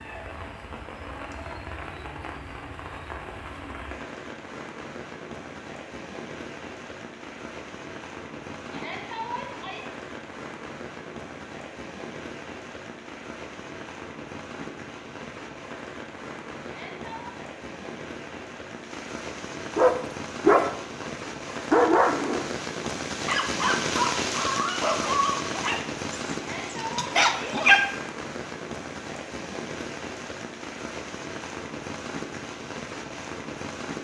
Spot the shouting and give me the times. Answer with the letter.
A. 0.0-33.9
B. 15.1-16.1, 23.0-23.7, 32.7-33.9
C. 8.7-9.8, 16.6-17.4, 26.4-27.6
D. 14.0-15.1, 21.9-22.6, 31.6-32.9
C.